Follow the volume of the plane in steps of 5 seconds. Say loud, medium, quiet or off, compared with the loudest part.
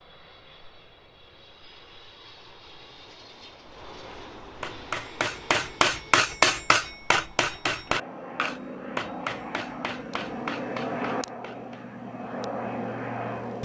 quiet, medium, loud.